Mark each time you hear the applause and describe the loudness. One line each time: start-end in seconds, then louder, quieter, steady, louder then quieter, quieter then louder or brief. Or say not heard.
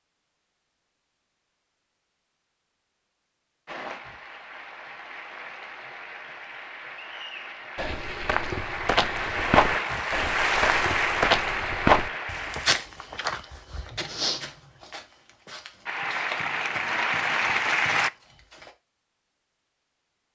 3.6-12.8 louder
15.8-18.1 brief.